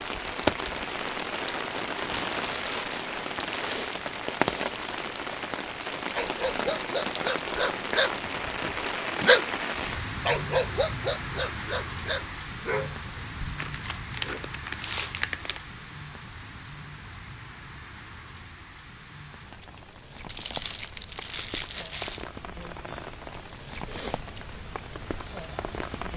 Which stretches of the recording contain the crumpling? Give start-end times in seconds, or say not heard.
1.9-3.8, 13.6-15.6, 20.2-22.2.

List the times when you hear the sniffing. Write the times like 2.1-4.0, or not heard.
3.2-4.8, 14.8-15.2, 23.5-24.2.